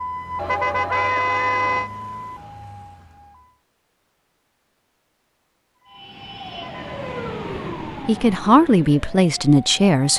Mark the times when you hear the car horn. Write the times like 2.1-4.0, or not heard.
0.3-1.9, 6.5-7.3.